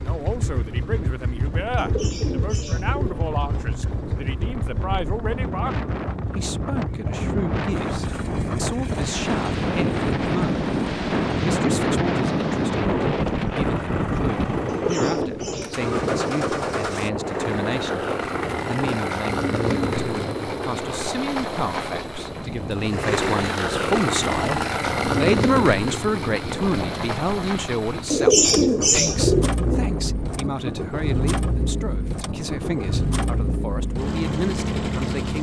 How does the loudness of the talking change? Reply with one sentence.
The volume of the talking goes up, then down.